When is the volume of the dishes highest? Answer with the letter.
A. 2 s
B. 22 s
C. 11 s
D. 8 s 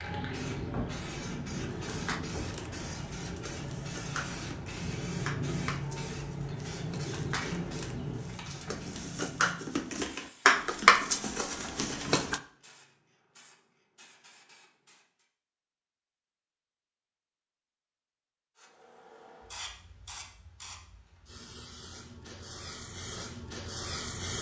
C.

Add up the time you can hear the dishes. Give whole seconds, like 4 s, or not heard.
11 s.